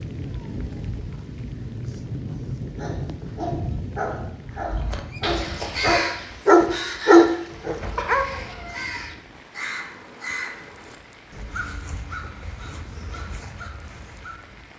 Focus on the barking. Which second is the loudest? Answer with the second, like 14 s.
7 s.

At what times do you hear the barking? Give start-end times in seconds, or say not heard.
2.8-8.4.